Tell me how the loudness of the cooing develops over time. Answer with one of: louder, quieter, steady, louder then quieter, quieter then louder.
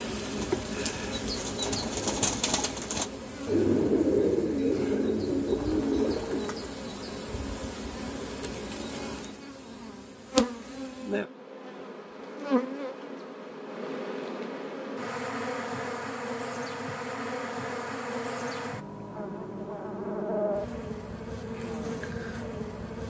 louder.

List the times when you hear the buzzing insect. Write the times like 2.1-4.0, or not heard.
0.0-23.0.